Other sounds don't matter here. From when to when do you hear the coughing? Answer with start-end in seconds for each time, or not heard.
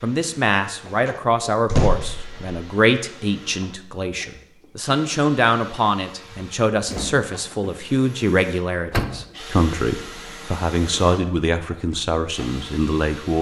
not heard.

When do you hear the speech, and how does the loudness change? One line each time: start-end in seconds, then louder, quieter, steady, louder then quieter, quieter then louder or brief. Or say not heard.
0.0-13.3 steady.